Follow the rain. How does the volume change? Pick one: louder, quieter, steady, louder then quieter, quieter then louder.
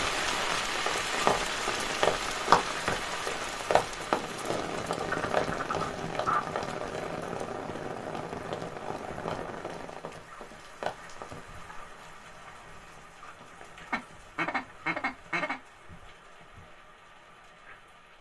quieter.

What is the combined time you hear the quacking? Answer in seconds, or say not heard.
3 s.